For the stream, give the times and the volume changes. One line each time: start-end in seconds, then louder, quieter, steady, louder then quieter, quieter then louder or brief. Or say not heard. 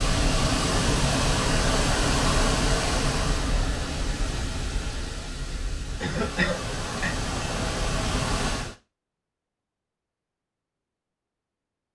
0.0-8.8 quieter then louder.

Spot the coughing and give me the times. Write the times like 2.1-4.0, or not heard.
6.0-7.2.